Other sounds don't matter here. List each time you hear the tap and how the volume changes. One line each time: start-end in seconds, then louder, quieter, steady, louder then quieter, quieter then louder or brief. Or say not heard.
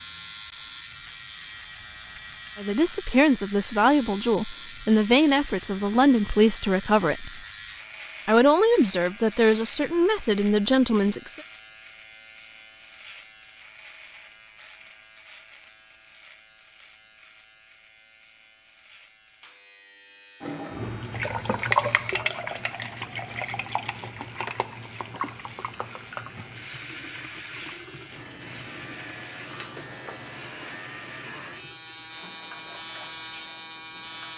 20.4-34.3 quieter.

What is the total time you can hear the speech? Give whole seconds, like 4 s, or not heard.
8 s.